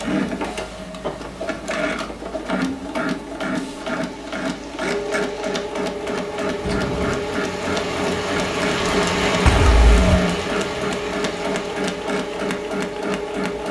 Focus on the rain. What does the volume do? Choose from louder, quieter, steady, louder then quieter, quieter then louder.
louder then quieter.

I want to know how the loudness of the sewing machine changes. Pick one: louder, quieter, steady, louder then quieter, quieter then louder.
steady.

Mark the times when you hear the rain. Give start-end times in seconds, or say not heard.
3.5-13.6.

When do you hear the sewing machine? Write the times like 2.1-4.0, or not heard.
0.0-13.6.